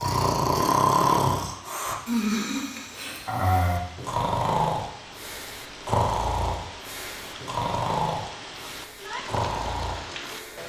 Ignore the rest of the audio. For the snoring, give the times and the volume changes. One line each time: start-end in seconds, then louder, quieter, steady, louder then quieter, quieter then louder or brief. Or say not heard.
0.0-10.6 quieter.